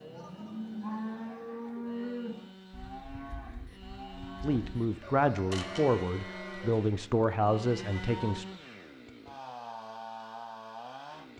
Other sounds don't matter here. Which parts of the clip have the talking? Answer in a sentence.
You can hear the talking from 4.4 to 8.4 s.